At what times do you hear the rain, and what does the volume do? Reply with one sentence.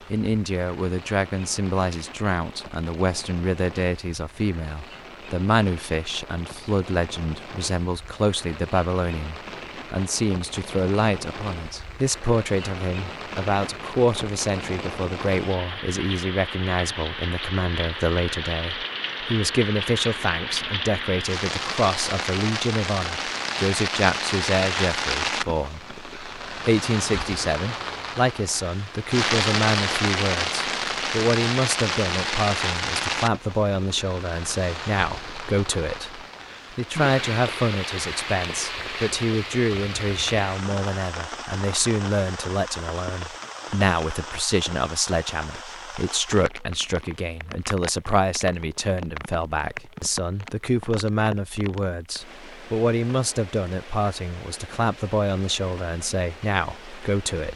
You can hear the rain from 0.0 to 57.5 s, getting louder then quieter.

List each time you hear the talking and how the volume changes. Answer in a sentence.
The talking can be heard from 0.1 to 57.5 s, at a steady volume.